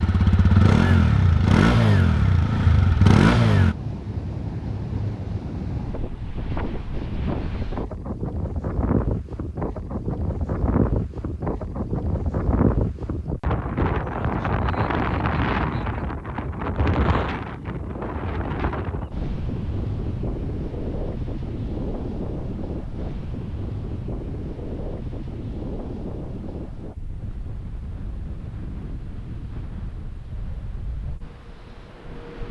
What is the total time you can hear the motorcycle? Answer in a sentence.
You can hear the motorcycle for 4 seconds altogether.